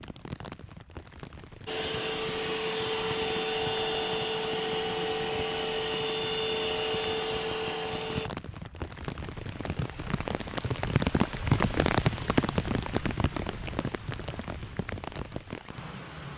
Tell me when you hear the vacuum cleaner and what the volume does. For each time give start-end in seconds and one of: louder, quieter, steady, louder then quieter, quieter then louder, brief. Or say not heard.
1.6-8.3 steady.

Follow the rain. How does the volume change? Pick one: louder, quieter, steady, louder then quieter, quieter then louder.
louder then quieter.